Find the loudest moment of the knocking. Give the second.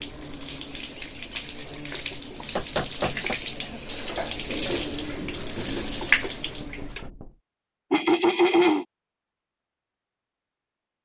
3 s.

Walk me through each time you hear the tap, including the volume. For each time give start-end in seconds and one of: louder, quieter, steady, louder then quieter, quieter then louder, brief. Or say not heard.
0.0-7.1 louder.